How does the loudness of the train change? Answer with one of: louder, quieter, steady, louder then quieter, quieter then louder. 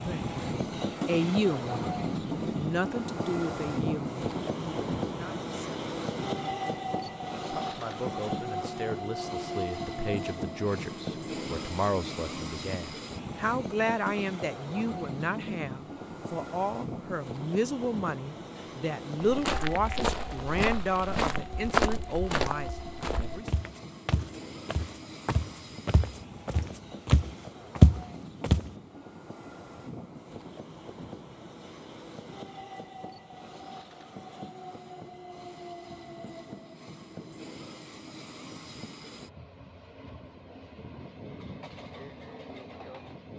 quieter.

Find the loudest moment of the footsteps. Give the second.
28 s.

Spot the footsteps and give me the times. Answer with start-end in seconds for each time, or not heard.
19.2-28.7.